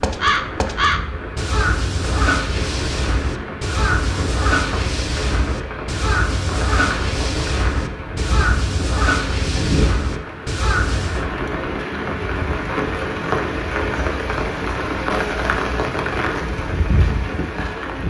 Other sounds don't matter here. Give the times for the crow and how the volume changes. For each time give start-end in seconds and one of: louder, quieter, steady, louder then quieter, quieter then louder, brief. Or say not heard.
0.0-11.2 steady.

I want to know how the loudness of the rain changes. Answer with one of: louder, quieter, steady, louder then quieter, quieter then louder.
louder.